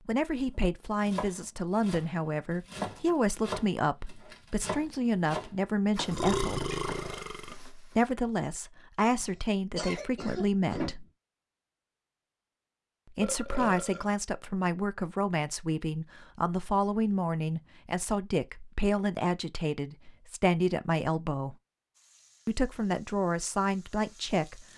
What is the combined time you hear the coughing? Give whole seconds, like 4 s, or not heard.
2 s.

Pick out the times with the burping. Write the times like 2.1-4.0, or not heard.
6.1-7.5, 13.2-14.2.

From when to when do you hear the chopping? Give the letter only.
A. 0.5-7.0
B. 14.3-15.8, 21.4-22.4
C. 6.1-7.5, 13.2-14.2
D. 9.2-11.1
A.